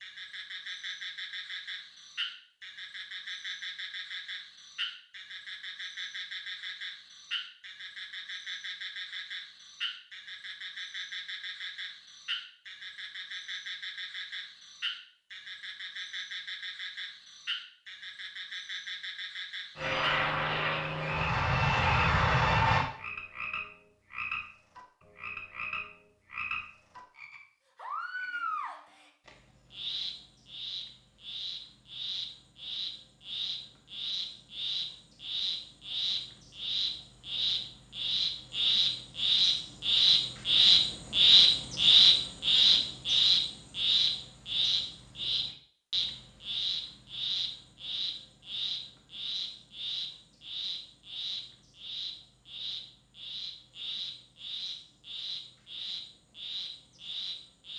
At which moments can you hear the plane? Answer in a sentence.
The plane can be heard from 19.8 to 22.9 s.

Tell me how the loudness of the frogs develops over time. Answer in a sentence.
The volume of the frogs goes up, then down.